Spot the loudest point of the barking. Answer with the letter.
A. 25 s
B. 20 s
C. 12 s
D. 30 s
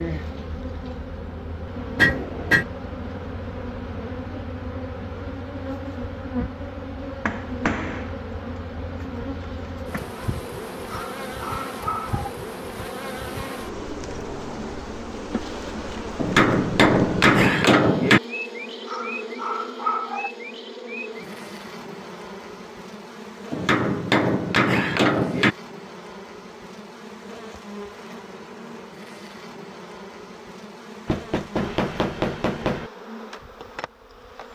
B.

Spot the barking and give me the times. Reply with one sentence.
You can hear the barking from 10.8 to 12.3 s and from 18.9 to 20.4 s.